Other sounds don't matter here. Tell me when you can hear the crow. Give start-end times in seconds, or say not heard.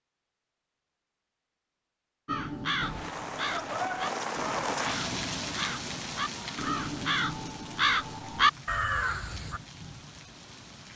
2.2-9.6.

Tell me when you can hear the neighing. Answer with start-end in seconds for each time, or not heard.
not heard.